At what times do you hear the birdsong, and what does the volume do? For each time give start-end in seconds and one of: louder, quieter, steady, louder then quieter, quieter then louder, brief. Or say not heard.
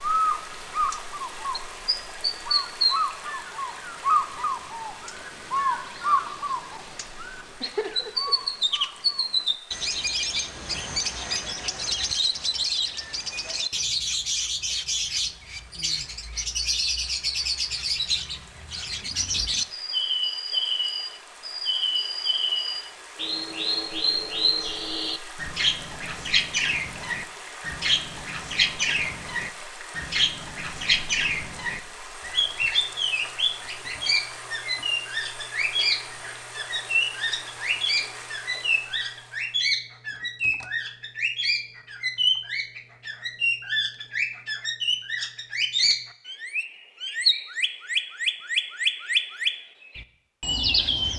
0.0-51.1 steady.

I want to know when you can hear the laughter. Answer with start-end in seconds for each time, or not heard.
7.6-8.3.